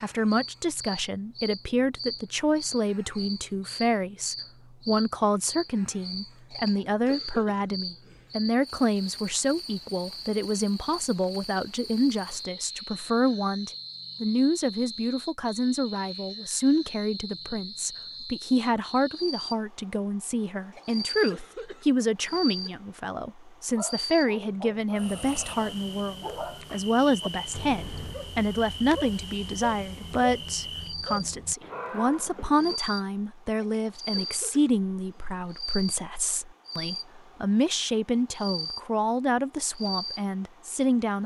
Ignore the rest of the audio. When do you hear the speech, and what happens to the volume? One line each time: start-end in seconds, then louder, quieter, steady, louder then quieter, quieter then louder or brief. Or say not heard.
0.0-41.2 steady.